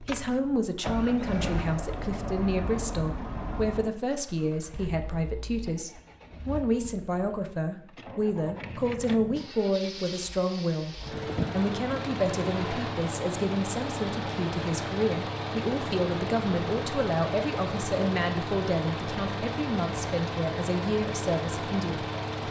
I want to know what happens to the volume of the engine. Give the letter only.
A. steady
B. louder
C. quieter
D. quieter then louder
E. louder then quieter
D.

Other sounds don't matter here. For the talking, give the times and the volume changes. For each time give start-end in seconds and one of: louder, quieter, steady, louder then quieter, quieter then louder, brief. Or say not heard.
0.0-22.4 steady.